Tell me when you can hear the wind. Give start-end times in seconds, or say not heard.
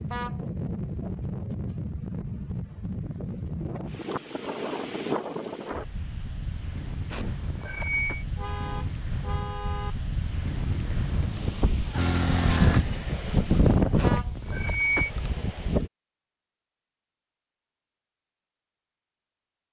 0.0-15.9.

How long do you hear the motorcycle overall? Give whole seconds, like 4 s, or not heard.
2 s.